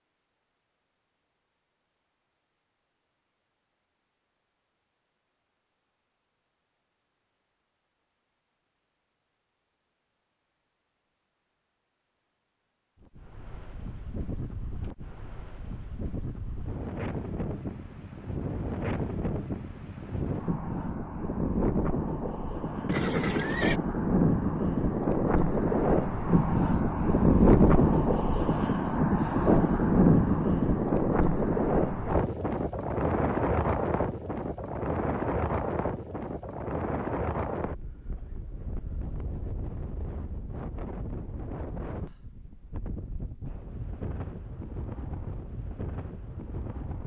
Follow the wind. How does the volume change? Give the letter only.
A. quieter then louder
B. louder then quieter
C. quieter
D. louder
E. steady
B.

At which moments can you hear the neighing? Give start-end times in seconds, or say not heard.
22.9-23.8.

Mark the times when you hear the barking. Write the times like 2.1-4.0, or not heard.
not heard.